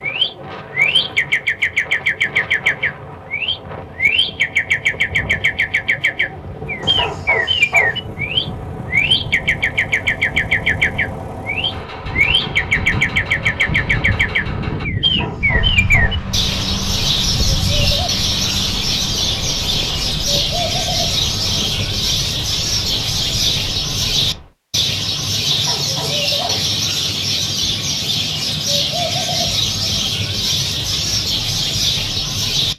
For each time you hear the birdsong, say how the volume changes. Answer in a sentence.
The birdsong can be heard from 0.0 to 32.7 s, at a steady volume.